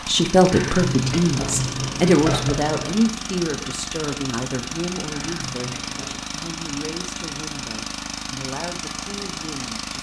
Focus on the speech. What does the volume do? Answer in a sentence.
The loudness of the speech goes down.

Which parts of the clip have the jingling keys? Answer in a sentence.
You can hear the jingling keys from 0.5 to 3.0 s and from 5.1 to 6.2 s.